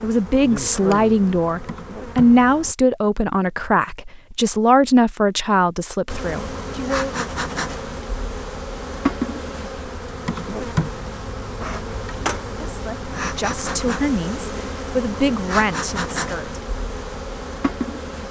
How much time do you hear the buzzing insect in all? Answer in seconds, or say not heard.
15 s.